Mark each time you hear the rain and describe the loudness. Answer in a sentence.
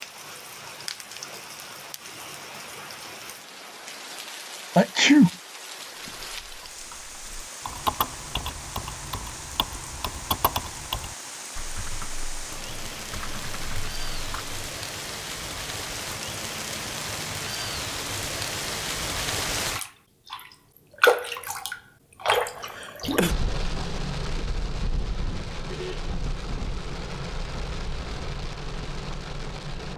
The rain can be heard from 0.0 to 29.9 s, getting louder then quieter.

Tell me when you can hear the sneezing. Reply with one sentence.
The sneezing can be heard from 4.8 to 5.3 s and from 22.8 to 23.4 s.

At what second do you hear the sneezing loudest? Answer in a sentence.
The loudest moment of the sneezing is at 5 seconds.